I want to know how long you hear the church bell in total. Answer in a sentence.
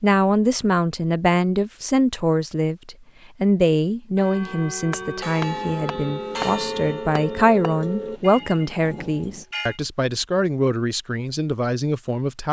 You can hear the church bell for 6 seconds altogether.